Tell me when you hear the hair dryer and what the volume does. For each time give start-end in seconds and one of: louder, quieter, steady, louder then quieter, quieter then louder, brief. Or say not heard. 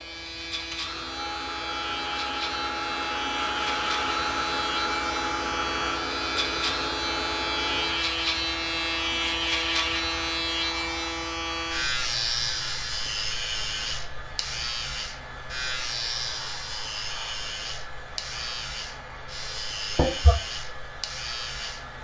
0.0-21.9 quieter.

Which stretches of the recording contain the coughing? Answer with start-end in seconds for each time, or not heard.
19.9-20.4.